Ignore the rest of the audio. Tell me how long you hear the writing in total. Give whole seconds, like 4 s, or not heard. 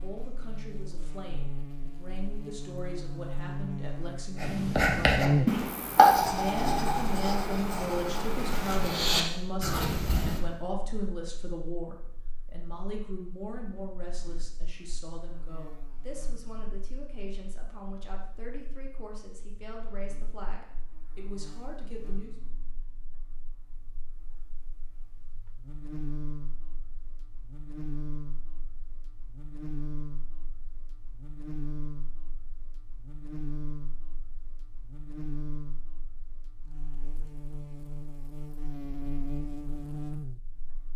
6 s.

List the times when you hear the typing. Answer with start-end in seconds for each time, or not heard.
not heard.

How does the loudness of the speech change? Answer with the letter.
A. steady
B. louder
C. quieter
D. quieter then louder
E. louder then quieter
E.